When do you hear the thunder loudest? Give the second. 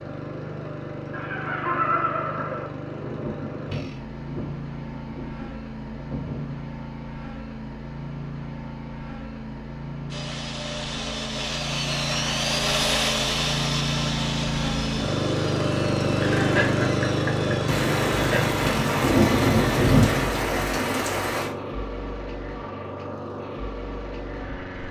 20 s.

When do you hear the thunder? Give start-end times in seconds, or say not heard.
3.0-6.6, 17.6-21.5.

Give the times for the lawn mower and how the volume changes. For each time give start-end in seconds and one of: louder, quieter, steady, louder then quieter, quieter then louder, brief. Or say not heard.
0.0-24.8 louder then quieter.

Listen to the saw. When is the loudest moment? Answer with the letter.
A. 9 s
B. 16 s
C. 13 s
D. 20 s
C.